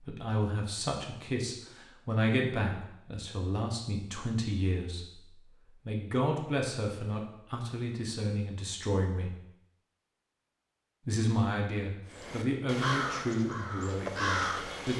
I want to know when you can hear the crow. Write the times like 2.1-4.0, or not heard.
12.1-14.9.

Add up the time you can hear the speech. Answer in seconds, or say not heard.
13 s.